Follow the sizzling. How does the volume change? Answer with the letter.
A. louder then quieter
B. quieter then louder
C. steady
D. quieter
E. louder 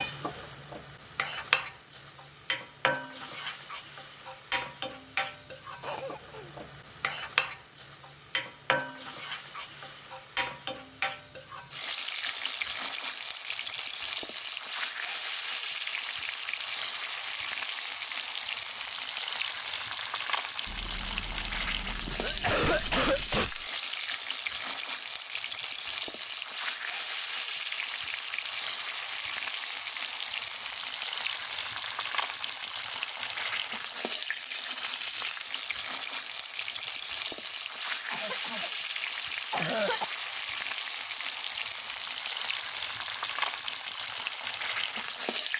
C.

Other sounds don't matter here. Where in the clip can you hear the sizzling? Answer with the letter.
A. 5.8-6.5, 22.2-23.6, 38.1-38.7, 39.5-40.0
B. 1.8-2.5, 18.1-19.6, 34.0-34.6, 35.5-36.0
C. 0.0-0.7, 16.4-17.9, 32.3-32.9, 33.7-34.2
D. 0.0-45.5
D.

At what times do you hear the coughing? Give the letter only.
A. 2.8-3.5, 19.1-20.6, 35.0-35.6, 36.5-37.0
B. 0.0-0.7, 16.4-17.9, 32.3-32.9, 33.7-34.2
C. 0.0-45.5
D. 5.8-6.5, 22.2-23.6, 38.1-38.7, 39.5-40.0
D.